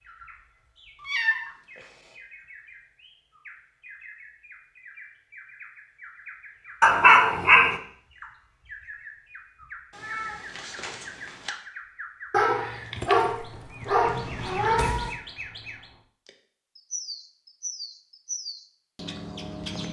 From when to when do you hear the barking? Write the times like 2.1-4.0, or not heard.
6.8-7.8, 12.3-15.2.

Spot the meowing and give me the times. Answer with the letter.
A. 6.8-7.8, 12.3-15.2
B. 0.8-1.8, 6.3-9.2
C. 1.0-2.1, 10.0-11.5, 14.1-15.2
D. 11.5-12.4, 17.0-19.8
C.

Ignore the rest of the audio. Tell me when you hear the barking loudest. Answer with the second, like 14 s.
7 s.